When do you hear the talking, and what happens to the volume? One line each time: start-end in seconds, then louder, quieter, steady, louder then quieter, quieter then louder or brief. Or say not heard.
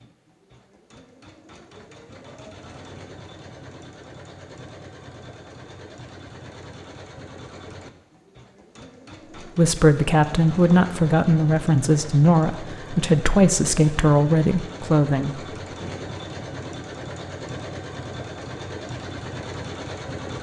9.6-15.8 steady.